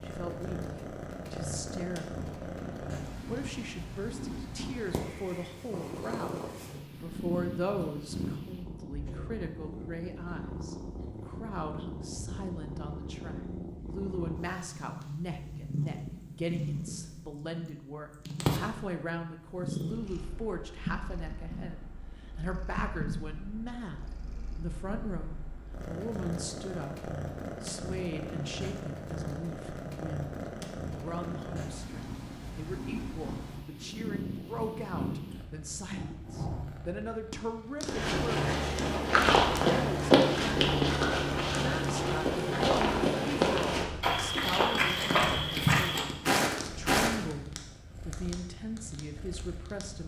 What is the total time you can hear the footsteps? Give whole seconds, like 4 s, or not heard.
9 s.